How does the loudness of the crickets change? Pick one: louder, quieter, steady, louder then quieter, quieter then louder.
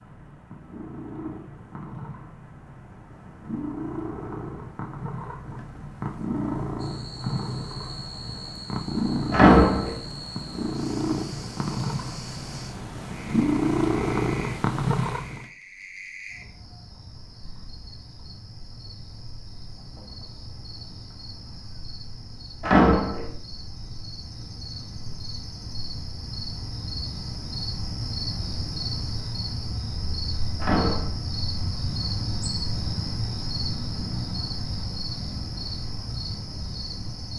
louder.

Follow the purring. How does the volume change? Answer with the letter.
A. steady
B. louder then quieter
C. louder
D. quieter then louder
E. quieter
C.